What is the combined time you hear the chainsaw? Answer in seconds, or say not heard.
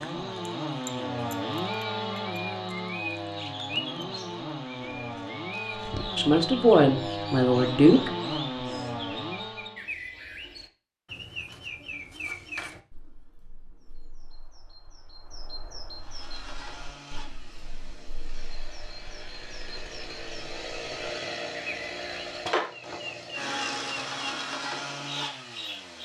20 s.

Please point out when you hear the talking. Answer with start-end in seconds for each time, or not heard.
6.2-8.1.